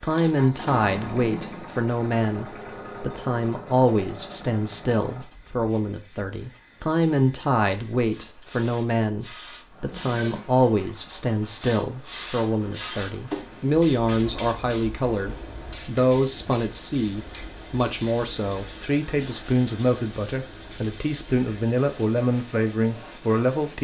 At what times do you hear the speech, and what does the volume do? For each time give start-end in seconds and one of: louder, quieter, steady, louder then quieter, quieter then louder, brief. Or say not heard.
0.0-23.7 steady.